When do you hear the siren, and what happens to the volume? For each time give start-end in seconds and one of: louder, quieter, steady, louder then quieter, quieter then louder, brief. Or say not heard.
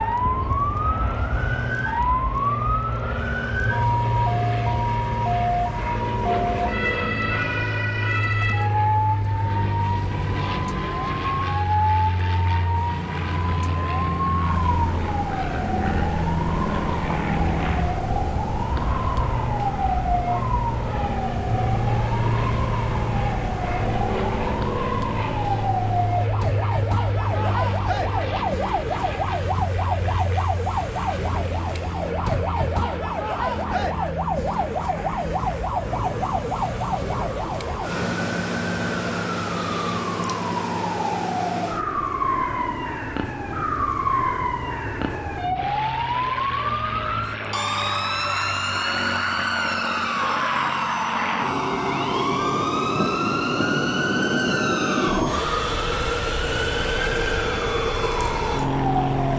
0.0-59.3 steady.